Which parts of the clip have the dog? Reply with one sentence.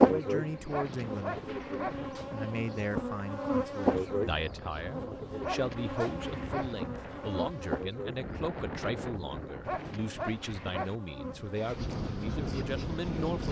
You can hear the dog from 0.7 to 2.0 s, from 5.4 to 6.8 s and from 9.7 to 10.9 s.